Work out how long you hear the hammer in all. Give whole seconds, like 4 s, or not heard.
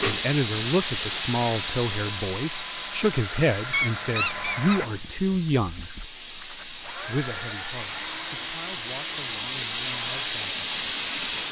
not heard.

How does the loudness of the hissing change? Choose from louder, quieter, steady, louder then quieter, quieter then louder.
quieter then louder.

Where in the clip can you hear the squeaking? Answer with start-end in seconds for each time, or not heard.
3.7-5.1.